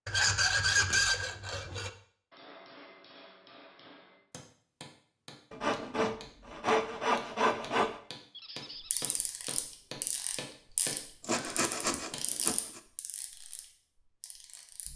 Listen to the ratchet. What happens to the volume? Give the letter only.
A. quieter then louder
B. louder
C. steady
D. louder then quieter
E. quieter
E.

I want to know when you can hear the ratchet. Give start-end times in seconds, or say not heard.
8.8-14.9.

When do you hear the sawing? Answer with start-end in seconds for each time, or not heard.
0.1-1.9, 5.5-8.0, 11.2-12.8.